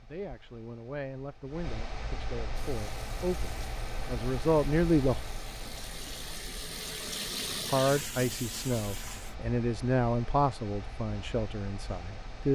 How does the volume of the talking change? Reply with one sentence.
The volume of the talking goes up, then down.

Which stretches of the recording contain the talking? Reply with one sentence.
You can hear the talking from 0.0 to 5.2 s and from 7.7 to 12.4 s.